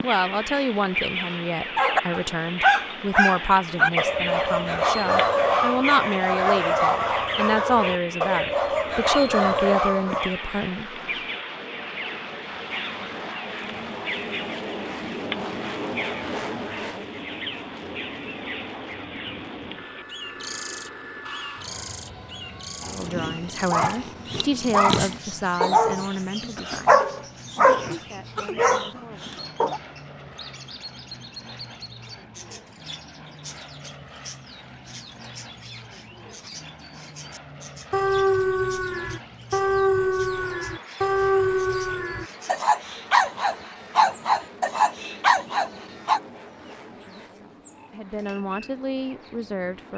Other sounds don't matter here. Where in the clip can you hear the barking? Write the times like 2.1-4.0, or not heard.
1.8-10.3, 22.8-29.8, 37.9-46.2.